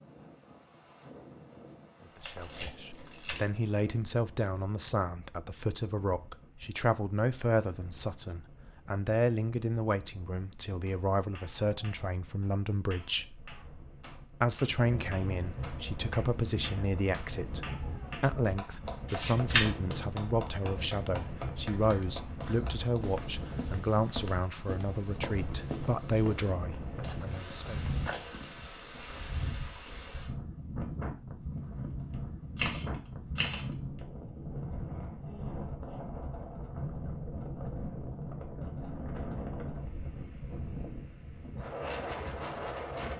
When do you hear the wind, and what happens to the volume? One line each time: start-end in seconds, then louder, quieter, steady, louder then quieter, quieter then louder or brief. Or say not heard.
0.0-43.1 louder.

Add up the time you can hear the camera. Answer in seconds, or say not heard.
4 s.